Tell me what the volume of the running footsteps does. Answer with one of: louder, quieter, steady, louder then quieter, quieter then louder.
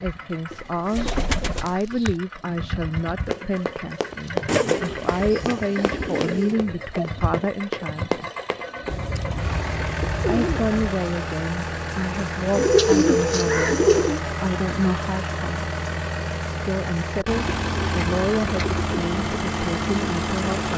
quieter then louder.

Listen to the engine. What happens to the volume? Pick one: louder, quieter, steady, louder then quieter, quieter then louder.
louder.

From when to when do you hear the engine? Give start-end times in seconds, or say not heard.
0.0-20.7.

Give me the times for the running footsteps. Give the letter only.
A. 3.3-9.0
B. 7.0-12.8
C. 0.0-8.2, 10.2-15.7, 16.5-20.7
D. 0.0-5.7
A.